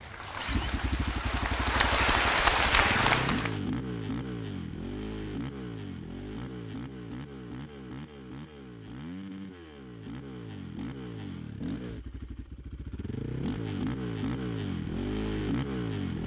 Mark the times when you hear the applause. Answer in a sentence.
The applause can be heard from 0.0 to 3.6 s.